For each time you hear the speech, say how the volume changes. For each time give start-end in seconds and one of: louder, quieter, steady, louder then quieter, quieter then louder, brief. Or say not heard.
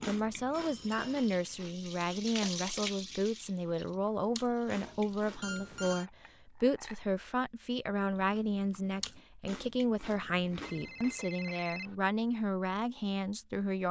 0.1-13.8 steady.